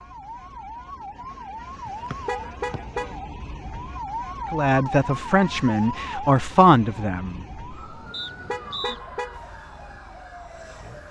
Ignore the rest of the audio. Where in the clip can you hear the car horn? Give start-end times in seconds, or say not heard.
1.9-3.1, 8.1-9.4.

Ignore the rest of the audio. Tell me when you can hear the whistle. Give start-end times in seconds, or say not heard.
2.1-2.8, 8.1-9.0.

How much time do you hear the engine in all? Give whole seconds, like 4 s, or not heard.
2 s.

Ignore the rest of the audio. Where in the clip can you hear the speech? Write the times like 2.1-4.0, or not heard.
4.5-7.5.